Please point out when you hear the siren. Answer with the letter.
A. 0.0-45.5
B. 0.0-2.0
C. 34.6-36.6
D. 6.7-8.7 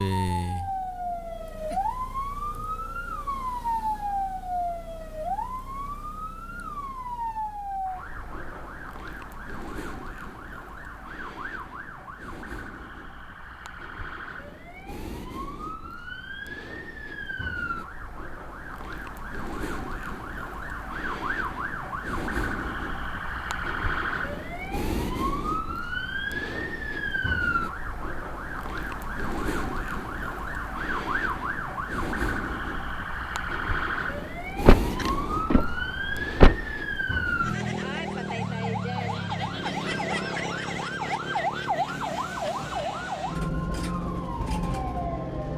A.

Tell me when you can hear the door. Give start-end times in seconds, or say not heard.
34.6-36.6.